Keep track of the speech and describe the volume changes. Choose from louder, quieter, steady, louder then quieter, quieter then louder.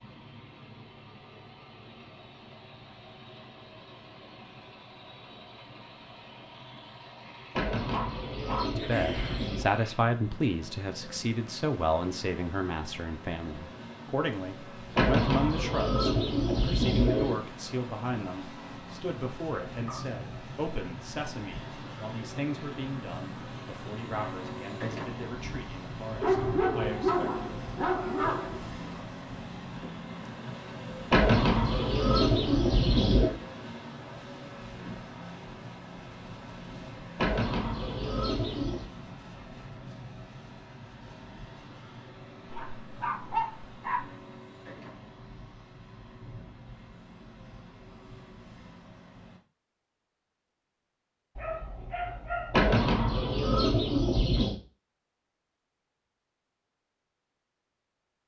quieter.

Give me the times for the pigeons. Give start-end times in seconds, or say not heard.
7.5-9.7, 14.9-17.4, 31.1-33.3, 37.1-38.9, 52.5-54.5.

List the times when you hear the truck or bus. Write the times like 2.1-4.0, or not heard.
0.0-49.4.